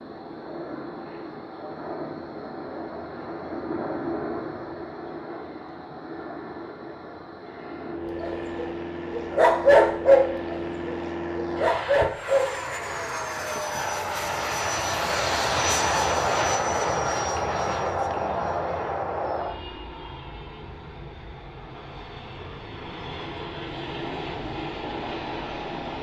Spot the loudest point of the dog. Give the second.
10 s.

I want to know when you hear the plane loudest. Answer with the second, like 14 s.
16 s.